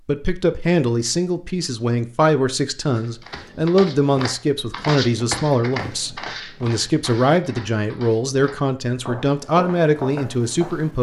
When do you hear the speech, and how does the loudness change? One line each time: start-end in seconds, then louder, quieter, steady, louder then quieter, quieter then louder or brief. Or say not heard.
0.1-10.9 steady.